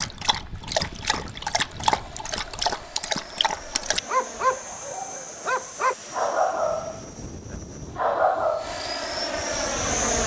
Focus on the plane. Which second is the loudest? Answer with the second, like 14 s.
10 s.